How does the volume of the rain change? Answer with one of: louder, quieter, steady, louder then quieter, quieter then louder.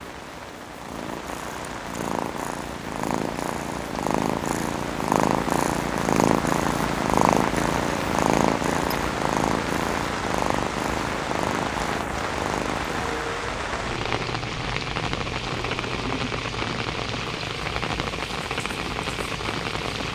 louder.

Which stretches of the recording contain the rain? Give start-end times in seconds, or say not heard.
0.0-20.0.